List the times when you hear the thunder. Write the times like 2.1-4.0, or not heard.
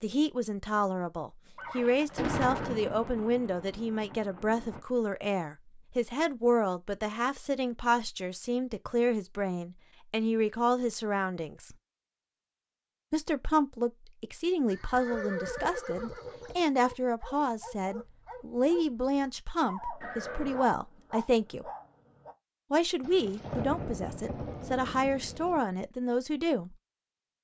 1.8-4.8, 23.0-25.6.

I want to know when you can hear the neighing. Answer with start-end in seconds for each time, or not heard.
1.6-2.9, 14.7-16.6, 20.0-20.7.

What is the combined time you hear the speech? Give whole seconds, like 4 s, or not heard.
24 s.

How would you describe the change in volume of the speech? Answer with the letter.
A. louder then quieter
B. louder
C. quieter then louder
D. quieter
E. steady
E.